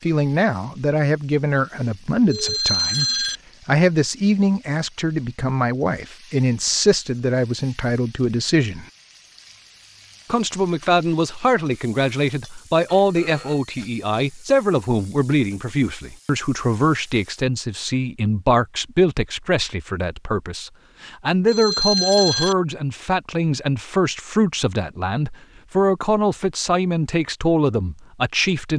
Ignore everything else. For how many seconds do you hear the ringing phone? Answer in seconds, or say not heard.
3 s.